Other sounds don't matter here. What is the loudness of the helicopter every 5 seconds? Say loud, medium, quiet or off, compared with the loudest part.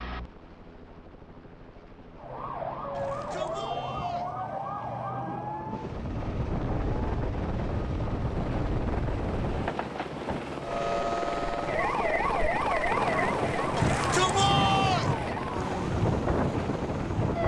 quiet, medium, loud, loud.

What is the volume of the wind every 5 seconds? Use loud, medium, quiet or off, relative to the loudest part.
off, loud, loud, loud.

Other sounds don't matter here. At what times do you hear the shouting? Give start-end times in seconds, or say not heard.
2.9-4.3, 13.8-15.2.